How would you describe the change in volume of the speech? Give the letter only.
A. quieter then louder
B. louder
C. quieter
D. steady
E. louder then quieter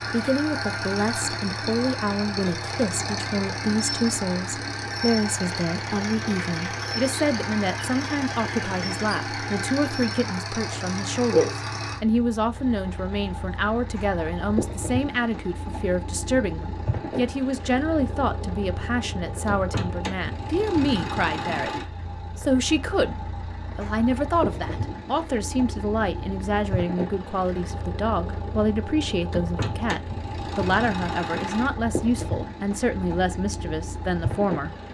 D.